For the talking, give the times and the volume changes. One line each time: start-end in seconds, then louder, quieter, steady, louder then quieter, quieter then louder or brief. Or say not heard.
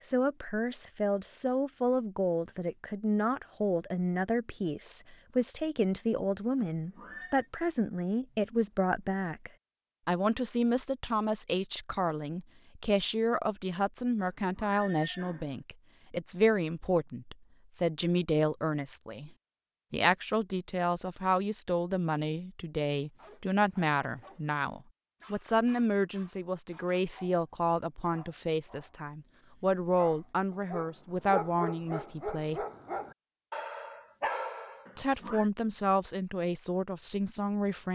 0.0-19.3 steady
19.9-32.6 steady
35.0-37.9 brief.